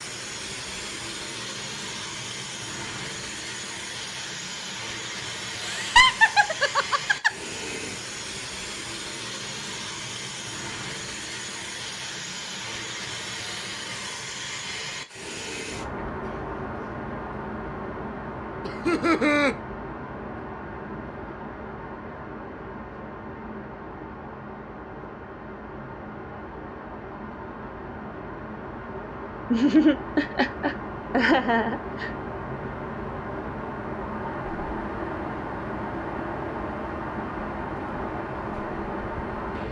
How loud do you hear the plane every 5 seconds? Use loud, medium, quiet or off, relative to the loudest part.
loud, loud, loud, loud, medium, medium, loud, loud.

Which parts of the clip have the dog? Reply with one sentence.
The dog can't be heard in this clip.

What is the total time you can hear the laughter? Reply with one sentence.
The laughter can be heard for 5 seconds in total.